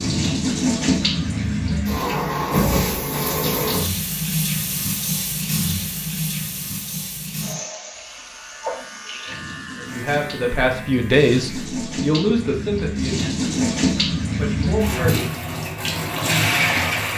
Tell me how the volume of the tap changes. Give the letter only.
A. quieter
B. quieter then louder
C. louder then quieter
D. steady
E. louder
B.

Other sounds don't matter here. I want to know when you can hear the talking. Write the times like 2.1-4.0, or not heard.
9.8-15.3.